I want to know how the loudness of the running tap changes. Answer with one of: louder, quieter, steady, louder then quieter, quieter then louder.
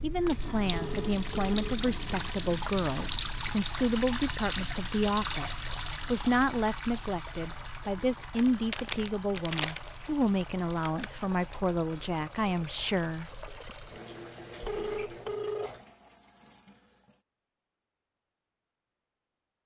quieter.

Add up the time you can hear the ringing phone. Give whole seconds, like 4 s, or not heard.
2 s.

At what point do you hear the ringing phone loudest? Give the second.
15 s.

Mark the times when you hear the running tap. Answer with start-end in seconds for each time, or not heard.
0.0-17.2.